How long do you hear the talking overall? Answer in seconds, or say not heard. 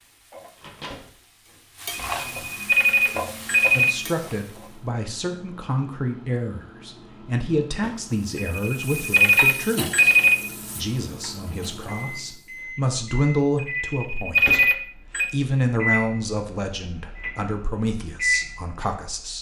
15 s.